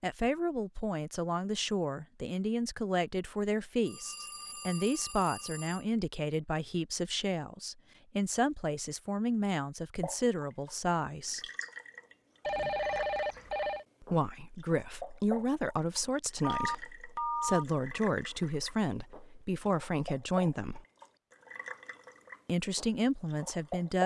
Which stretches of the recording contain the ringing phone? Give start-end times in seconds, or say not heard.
3.9-5.8, 12.4-13.8, 16.4-17.6.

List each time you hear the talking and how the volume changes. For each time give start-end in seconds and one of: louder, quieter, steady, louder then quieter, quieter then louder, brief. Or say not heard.
0.0-11.4 steady
14.0-20.8 steady
22.4-24.0 brief.